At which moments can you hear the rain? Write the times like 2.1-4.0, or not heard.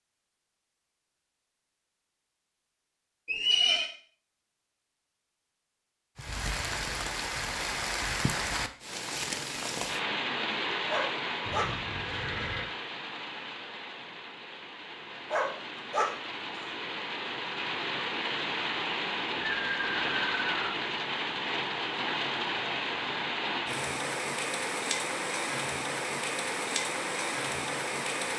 6.2-28.3.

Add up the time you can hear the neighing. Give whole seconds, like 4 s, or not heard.
3 s.